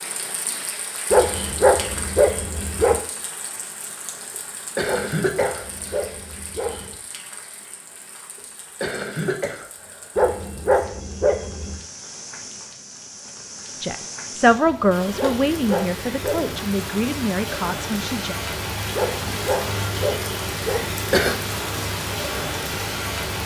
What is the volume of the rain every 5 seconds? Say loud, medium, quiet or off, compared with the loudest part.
medium, quiet, medium, loud, loud.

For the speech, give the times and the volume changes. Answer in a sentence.
You can hear the speech from 13.8 to 18.4 s, getting quieter.